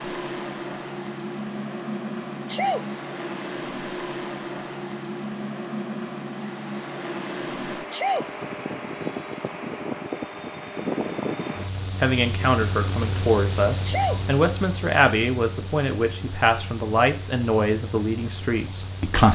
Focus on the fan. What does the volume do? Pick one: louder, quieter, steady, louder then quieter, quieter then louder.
quieter.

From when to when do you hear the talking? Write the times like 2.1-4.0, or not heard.
11.8-19.3.